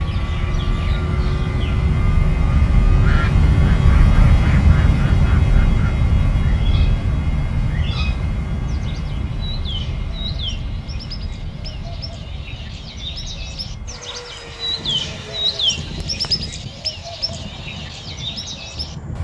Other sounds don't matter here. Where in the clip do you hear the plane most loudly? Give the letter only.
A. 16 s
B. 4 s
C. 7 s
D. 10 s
B.